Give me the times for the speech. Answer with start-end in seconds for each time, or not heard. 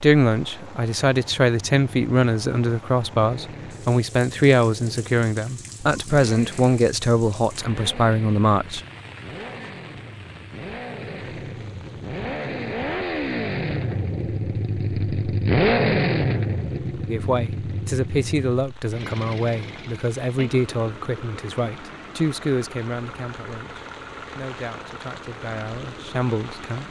0.0-8.8, 17.1-26.8.